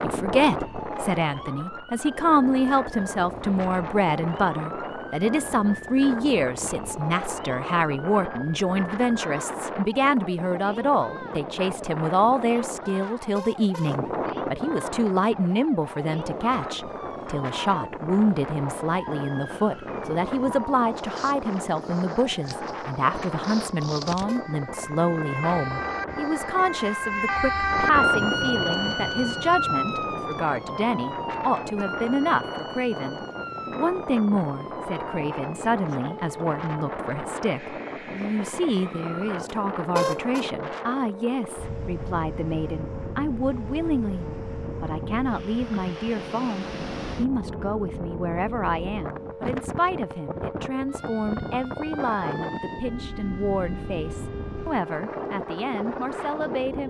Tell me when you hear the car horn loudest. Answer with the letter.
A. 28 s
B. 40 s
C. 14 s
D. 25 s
B.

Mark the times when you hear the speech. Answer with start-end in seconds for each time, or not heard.
0.0-56.8.